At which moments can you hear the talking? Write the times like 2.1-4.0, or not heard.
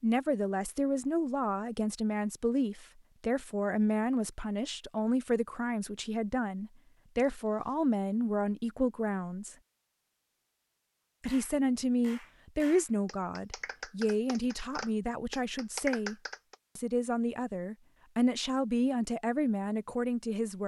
0.0-9.6, 11.2-16.1, 16.8-20.6.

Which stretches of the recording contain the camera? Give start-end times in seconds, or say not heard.
not heard.